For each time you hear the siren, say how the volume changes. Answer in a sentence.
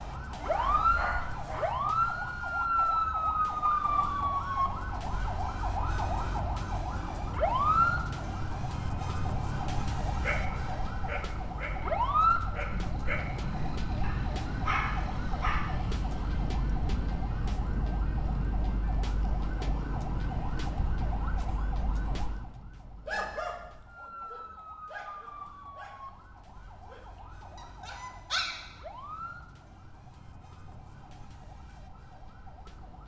The siren can be heard from 0.0 to 33.0 s, getting quieter.